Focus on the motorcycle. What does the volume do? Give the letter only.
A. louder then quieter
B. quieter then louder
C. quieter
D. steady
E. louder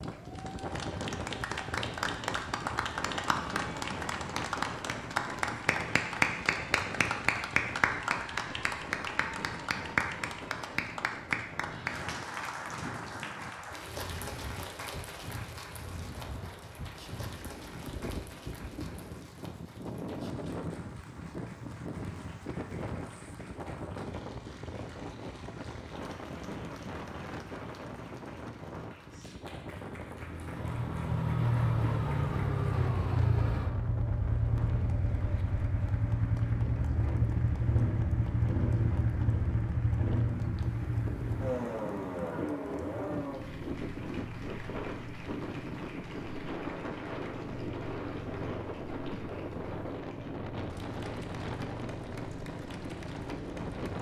C.